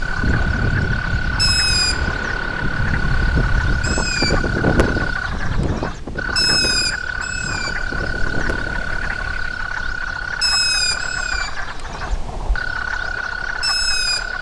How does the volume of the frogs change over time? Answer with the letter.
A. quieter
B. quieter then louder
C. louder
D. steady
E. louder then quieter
D.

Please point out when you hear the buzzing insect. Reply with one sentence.
You can't hear the buzzing insect here.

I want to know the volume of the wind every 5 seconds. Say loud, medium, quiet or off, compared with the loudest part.
loud, medium, off.